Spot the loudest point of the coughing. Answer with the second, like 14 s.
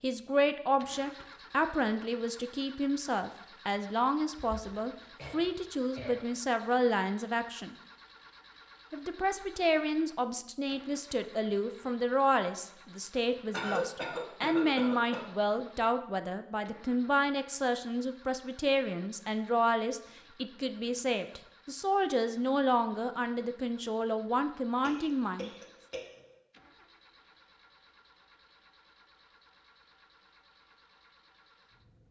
14 s.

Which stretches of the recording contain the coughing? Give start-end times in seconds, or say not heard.
4.3-6.2, 13.5-15.2, 24.8-26.4.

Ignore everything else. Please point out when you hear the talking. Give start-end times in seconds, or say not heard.
0.0-7.8, 8.9-25.5.